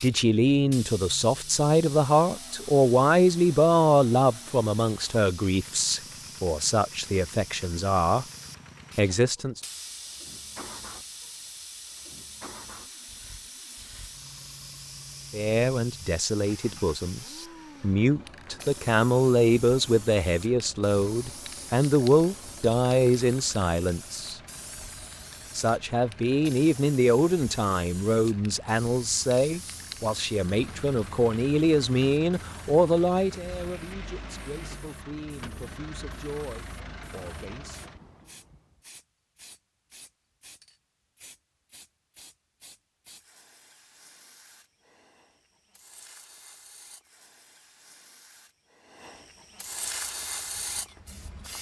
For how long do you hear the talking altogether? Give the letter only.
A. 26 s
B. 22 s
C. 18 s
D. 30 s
D.